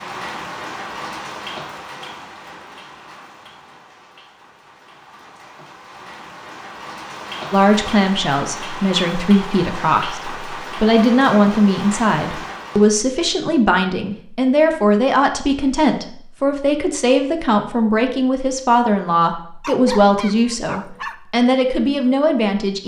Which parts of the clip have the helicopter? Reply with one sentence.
You can't hear the helicopter here.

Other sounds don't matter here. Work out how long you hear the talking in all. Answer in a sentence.
You can hear the talking for 15 seconds altogether.